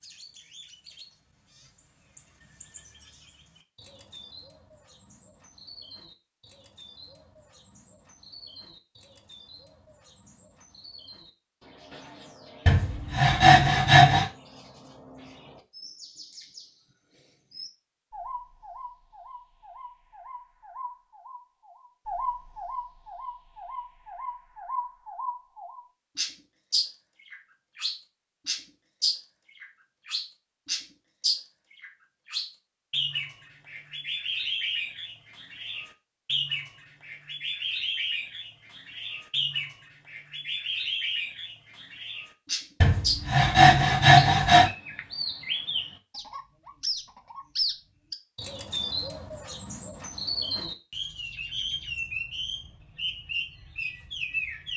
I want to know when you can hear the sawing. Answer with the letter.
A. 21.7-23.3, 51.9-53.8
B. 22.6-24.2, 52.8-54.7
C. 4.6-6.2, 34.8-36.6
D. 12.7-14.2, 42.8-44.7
D.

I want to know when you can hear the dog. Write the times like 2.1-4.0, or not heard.
not heard.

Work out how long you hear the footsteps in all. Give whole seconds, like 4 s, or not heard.
not heard.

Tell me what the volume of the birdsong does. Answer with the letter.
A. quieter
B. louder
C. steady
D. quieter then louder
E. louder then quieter
B.